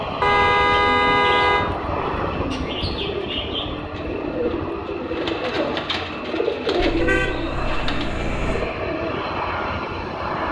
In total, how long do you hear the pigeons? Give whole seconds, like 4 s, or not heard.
9 s.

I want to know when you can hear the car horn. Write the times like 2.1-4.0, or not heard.
0.2-1.6, 6.8-8.7.